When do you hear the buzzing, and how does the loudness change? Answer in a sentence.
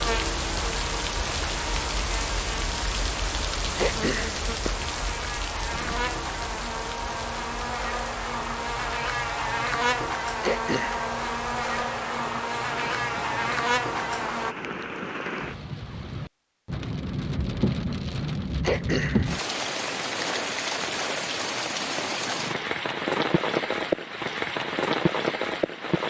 The buzzing can be heard from 0.0 to 14.6 s, getting louder.